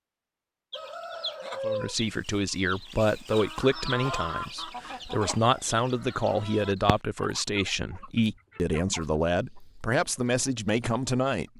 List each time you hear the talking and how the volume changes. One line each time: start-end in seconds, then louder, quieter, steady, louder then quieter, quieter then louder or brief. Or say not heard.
1.6-11.5 steady.